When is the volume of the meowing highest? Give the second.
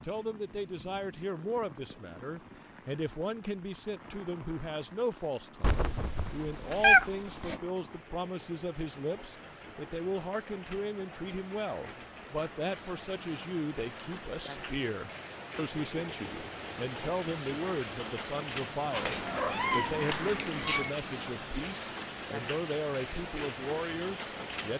7 s.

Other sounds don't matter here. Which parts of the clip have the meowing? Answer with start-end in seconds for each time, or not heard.
5.6-7.6, 18.9-20.9.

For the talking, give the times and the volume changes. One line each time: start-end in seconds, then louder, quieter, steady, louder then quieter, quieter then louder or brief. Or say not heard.
0.0-24.7 steady.